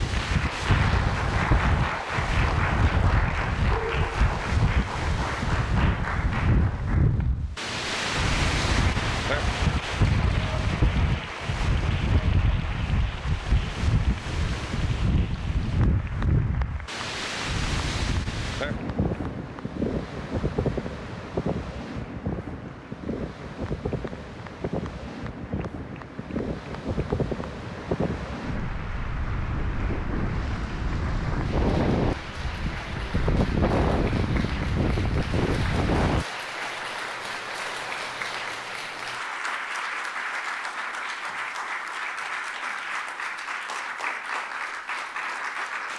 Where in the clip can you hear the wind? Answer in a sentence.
The wind can be heard from 0.0 to 36.2 s.